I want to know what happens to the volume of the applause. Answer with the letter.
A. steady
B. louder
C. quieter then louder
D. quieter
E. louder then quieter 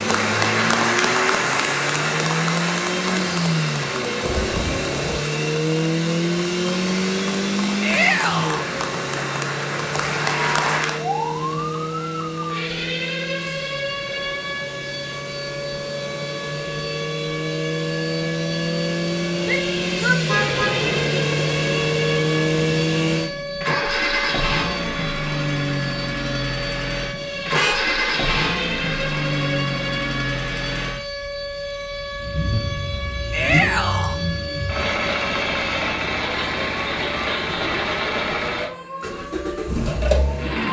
C.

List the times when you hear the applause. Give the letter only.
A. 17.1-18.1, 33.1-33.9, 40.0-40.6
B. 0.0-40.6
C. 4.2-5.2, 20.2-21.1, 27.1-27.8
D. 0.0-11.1
D.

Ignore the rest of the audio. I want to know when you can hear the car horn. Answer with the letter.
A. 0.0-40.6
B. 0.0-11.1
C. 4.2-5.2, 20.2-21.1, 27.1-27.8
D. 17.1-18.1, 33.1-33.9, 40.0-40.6
C.